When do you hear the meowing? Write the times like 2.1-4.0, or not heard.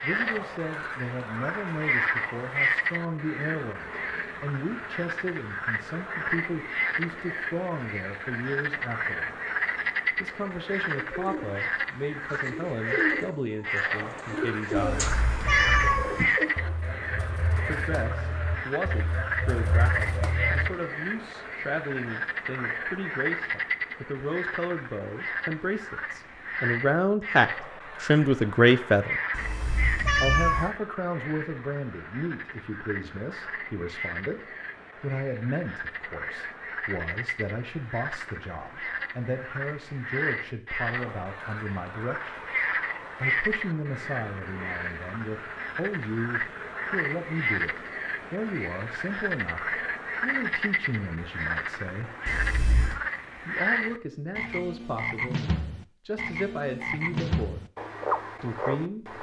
14.8-16.3, 29.3-30.7, 52.2-53.0.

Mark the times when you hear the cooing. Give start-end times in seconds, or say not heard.
10.5-20.7.